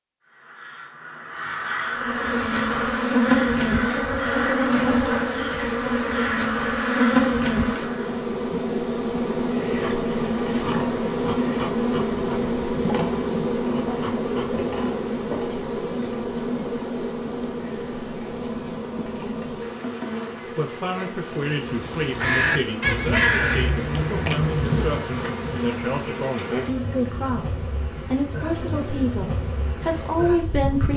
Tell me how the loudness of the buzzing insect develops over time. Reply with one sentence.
The loudness of the buzzing insect goes down.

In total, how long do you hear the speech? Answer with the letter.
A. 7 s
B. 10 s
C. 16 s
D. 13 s
B.